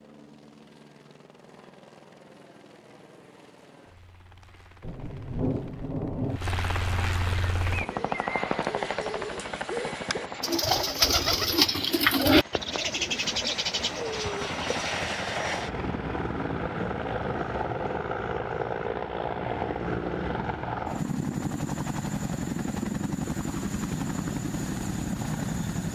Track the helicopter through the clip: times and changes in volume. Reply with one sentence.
You can hear the helicopter from 0.0 to 25.8 s, getting louder.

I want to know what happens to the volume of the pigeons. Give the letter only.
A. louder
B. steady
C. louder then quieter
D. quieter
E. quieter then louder
C.